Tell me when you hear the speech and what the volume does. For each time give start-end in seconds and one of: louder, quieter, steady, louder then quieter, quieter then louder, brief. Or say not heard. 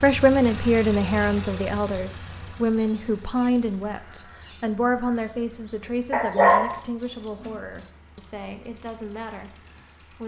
0.0-10.2 quieter.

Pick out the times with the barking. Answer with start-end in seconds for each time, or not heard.
6.1-7.5.